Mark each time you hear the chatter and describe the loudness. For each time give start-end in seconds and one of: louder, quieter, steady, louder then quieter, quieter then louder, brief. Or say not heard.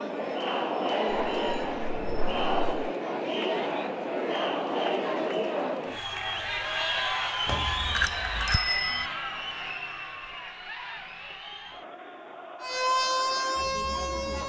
0.0-14.4 quieter.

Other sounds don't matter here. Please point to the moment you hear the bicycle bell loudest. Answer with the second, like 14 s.
9 s.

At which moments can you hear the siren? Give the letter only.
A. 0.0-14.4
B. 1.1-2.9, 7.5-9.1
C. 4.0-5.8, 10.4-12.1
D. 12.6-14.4
D.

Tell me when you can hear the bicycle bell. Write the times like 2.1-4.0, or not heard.
1.1-2.9, 7.5-9.1.